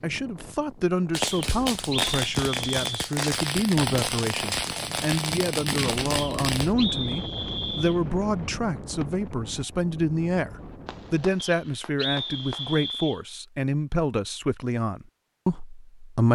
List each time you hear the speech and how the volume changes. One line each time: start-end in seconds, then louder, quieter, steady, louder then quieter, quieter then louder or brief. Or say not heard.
0.0-16.2 steady.